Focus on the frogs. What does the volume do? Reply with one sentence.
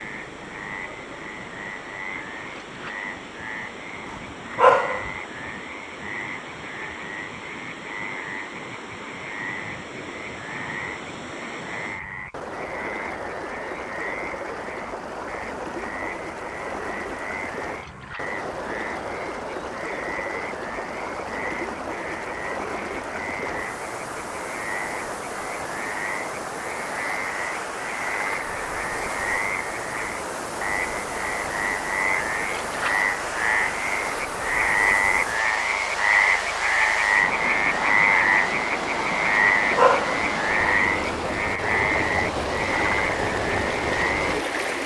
The loudness of the frogs goes up.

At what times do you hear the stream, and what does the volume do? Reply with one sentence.
The stream can be heard from 0.0 to 44.8 s, getting louder.